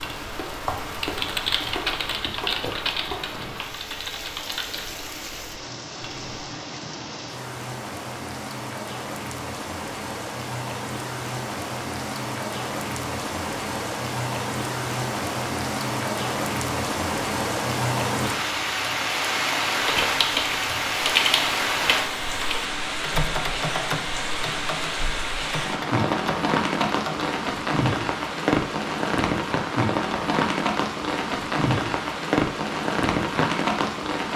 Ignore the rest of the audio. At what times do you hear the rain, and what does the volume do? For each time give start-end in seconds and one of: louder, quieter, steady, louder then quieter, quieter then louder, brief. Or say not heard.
0.0-34.3 louder.